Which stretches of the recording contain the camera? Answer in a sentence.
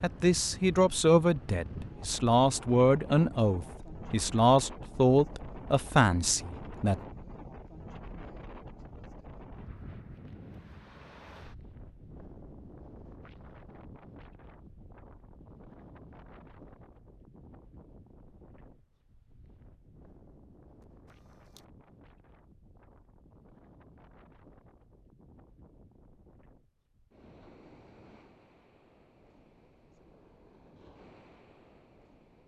The camera can be heard from 20.8 to 21.6 s.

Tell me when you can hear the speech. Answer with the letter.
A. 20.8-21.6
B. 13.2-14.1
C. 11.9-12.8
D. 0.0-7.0
D.